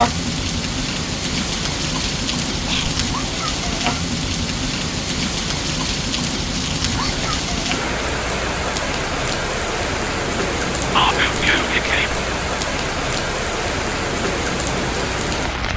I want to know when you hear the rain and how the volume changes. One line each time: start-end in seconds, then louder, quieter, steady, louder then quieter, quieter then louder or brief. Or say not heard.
0.0-15.7 steady.